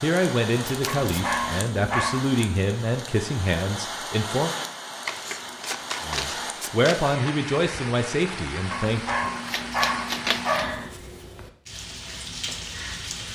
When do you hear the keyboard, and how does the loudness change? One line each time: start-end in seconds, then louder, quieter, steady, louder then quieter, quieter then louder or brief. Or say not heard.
not heard.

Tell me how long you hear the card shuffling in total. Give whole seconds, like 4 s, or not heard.
4 s.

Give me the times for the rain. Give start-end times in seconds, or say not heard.
0.0-13.2.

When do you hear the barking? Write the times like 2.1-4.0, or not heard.
0.8-2.3, 8.7-10.8.